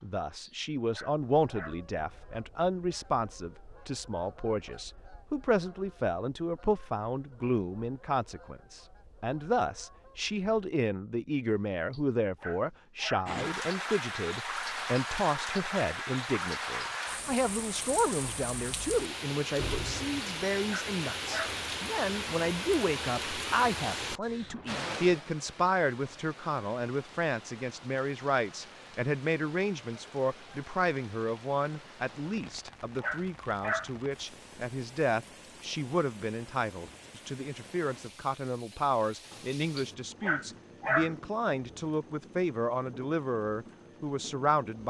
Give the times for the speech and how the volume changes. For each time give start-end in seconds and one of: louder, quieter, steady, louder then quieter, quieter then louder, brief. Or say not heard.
0.0-44.8 steady.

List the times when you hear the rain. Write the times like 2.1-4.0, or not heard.
13.2-44.8.